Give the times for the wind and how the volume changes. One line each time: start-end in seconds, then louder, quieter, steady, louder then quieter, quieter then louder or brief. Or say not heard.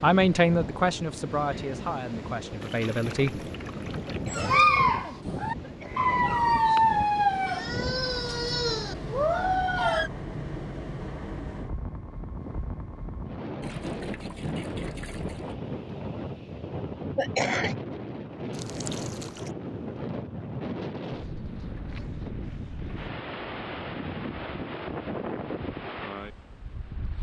0.0-27.1 steady.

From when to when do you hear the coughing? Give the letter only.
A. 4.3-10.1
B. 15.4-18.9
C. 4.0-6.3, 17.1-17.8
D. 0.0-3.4
C.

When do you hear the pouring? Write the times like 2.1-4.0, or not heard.
2.6-4.3, 13.6-15.6, 18.5-19.5.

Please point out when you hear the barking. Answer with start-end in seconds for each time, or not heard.
4.3-10.1.